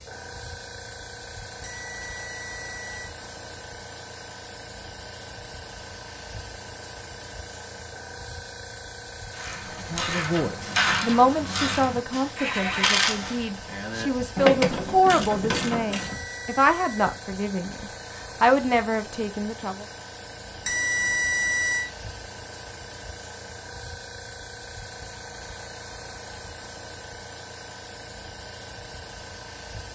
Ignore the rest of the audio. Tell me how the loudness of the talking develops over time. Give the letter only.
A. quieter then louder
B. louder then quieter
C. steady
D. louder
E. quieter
A.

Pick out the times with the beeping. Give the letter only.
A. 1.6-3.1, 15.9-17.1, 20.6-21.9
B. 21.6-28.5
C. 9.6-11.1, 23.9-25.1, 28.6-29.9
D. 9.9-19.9
A.